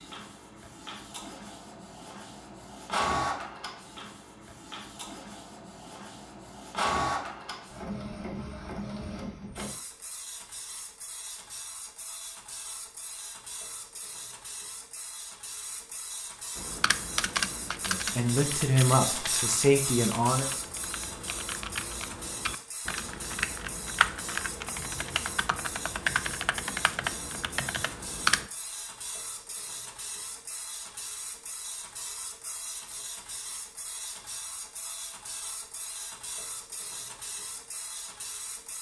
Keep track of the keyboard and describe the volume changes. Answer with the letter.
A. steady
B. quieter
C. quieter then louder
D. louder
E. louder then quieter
C.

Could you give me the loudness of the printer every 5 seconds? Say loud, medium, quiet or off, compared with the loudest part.
loud, loud, medium, loud, medium, medium, medium, medium.